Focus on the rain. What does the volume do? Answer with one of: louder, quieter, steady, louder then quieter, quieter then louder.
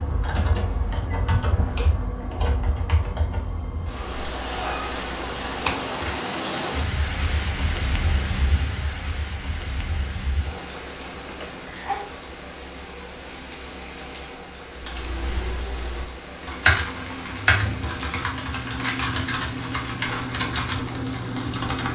louder then quieter.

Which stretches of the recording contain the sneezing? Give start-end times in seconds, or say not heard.
11.2-12.1.